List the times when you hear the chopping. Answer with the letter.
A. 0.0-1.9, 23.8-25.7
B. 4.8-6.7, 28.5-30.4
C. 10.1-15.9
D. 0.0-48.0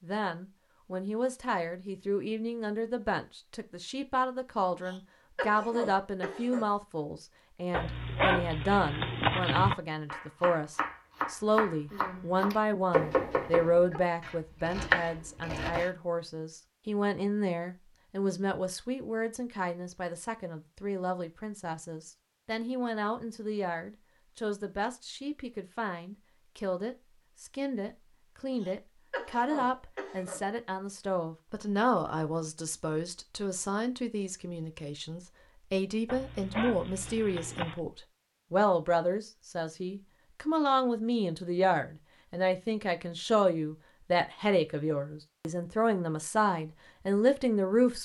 C.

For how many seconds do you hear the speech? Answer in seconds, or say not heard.
48 s.